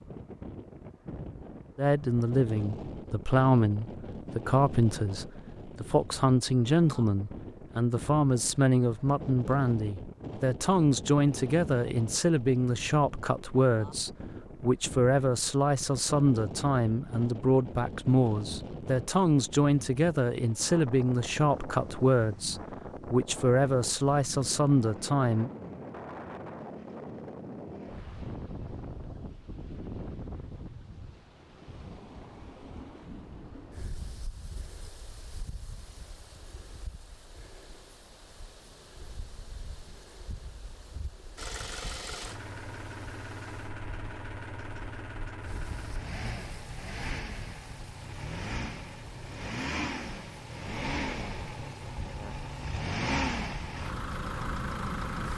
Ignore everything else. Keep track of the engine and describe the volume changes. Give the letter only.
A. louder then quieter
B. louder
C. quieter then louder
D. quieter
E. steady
B.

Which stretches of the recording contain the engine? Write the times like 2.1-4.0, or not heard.
41.4-55.3.